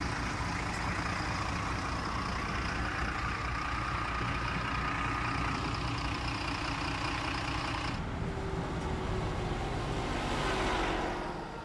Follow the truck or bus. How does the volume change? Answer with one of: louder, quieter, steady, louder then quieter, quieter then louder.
steady.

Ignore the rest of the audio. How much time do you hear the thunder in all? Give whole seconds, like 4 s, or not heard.
2 s.